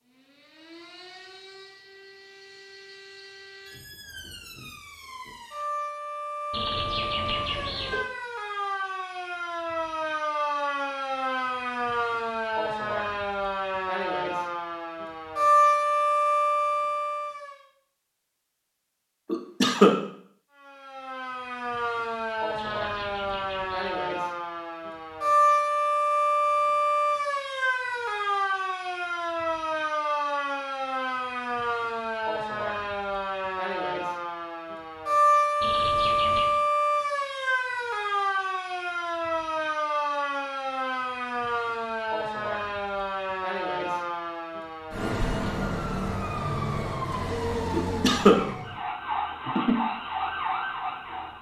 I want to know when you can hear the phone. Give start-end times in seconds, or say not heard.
6.5-8.1, 22.6-24.1, 35.6-36.6.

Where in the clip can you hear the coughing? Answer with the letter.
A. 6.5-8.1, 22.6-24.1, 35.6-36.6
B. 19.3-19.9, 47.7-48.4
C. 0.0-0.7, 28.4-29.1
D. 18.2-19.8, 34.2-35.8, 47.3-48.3
B.